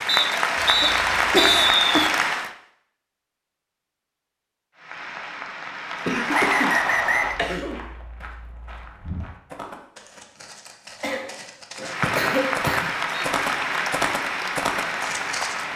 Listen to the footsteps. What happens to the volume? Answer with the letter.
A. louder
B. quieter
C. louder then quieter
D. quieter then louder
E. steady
A.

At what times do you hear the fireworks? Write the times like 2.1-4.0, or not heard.
not heard.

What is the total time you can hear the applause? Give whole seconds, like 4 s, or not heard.
9 s.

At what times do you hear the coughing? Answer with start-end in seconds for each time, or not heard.
0.6-2.1, 6.0-7.8, 11.0-12.9.